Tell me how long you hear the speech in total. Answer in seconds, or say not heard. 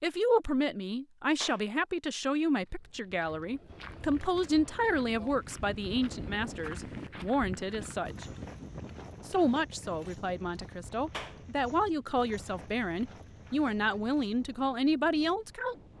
15 s.